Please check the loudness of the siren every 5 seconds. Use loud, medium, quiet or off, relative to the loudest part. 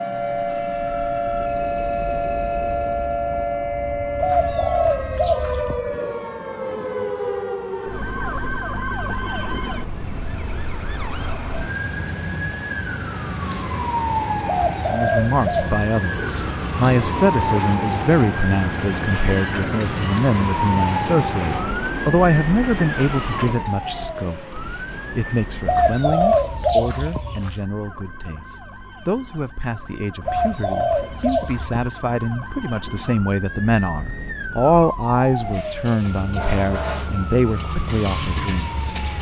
loud, loud, loud, loud, loud, quiet, medium, medium.